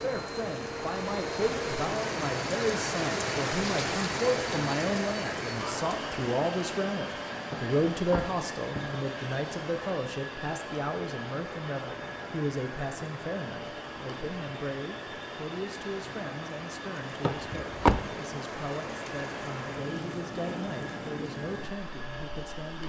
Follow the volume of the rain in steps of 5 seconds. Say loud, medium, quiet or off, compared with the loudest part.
loud, medium, medium, medium, medium.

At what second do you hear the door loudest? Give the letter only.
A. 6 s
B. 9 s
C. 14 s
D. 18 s
D.